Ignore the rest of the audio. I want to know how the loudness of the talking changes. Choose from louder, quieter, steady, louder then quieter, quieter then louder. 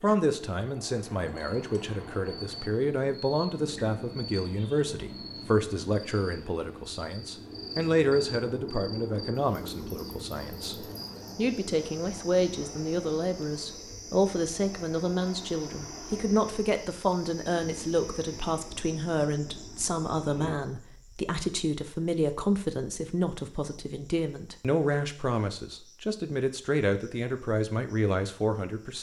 steady.